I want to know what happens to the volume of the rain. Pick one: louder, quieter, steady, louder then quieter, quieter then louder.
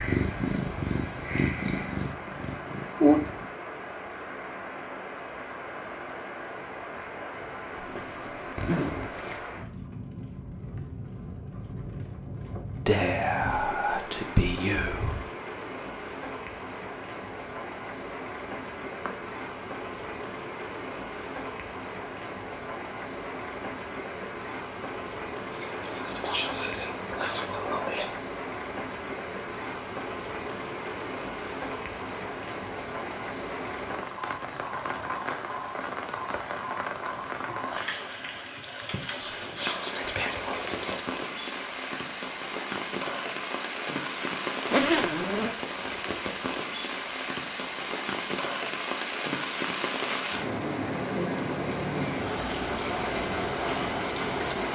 louder.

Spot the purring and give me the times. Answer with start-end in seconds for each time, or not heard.
0.0-3.5.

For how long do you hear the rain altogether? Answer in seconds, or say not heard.
55 s.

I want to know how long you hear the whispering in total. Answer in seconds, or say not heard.
7 s.